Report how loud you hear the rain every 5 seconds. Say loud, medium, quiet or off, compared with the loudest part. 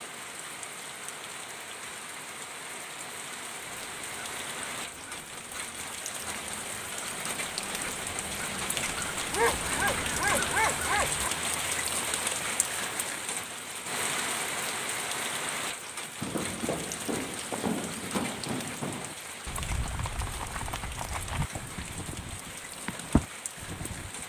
medium, loud, loud, medium, medium.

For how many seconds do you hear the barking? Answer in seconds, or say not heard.
2 s.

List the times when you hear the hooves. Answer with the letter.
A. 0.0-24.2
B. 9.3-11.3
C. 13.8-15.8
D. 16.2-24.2
D.